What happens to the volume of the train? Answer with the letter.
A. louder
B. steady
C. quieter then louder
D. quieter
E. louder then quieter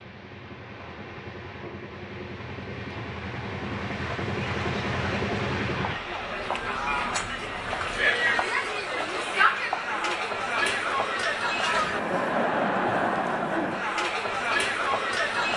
E.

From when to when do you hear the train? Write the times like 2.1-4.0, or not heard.
0.0-8.1.